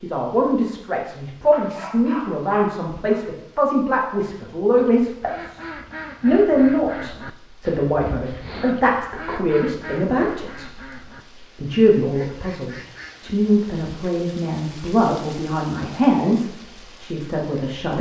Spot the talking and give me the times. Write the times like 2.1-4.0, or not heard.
0.0-10.8, 11.6-17.9.